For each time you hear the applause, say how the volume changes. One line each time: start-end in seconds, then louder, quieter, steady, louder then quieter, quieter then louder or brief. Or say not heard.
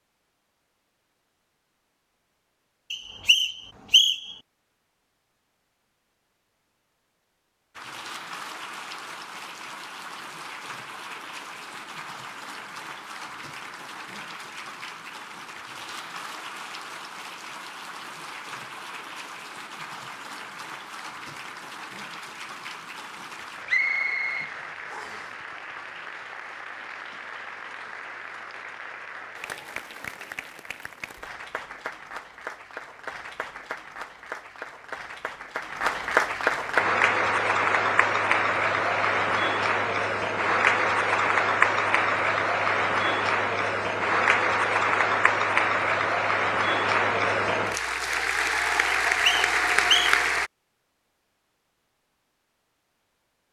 7.8-50.5 louder.